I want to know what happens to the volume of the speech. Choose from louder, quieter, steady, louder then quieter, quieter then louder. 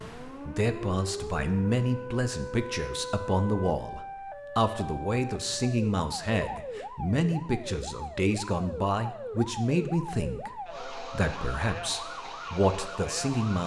steady.